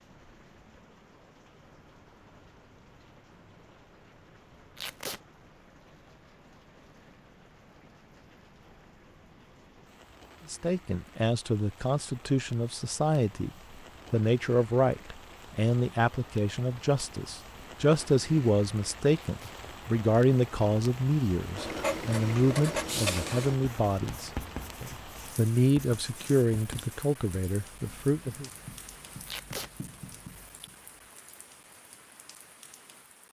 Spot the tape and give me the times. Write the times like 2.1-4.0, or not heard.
4.8-5.2, 19.1-19.6, 29.2-29.7.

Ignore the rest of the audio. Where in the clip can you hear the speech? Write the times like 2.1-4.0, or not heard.
10.5-13.5, 14.1-28.5.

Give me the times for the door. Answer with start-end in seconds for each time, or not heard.
not heard.